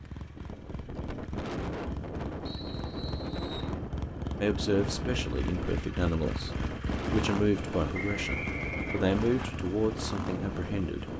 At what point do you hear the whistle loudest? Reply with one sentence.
The loudest moment of the whistle is at 8 seconds.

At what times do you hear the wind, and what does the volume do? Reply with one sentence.
You can hear the wind from 0.0 to 11.1 s, at a steady volume.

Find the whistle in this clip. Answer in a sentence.
You can hear the whistle from 2.5 to 3.8 s and from 7.9 to 9.4 s.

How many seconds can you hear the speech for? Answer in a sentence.
The speech can be heard for 7 seconds in total.